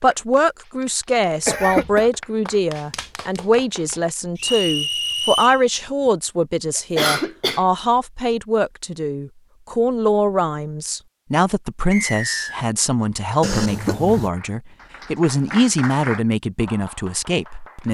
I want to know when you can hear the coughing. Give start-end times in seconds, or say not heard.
1.4-2.1, 7.0-7.7, 13.4-14.3.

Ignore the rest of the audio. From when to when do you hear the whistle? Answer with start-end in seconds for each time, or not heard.
4.3-5.6, 11.9-12.7.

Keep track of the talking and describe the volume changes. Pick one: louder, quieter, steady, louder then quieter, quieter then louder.
steady.